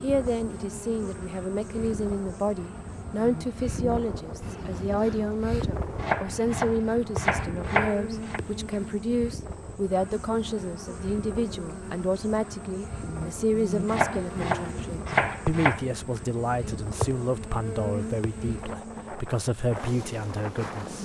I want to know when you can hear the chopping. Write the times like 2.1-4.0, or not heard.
5.9-8.4, 13.8-15.8.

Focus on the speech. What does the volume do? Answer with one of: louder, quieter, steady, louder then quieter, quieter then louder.
steady.